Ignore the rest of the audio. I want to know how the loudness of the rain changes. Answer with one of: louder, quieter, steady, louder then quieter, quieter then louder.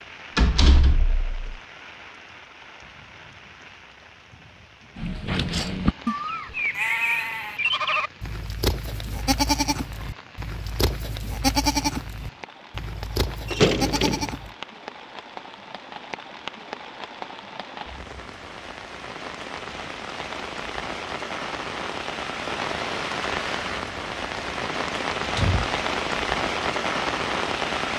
louder.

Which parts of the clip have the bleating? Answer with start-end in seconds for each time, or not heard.
5.0-14.6.